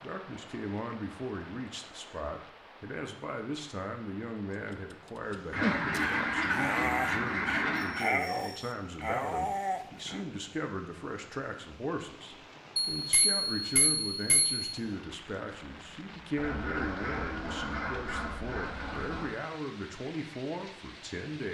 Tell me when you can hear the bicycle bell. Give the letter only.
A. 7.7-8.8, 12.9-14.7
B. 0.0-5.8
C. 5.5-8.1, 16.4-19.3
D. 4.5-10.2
A.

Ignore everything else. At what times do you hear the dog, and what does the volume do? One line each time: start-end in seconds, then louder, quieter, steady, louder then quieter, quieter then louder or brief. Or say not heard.
4.5-10.2 steady.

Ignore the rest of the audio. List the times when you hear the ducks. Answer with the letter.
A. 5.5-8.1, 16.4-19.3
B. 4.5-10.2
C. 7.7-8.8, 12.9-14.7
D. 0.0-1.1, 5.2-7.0
A.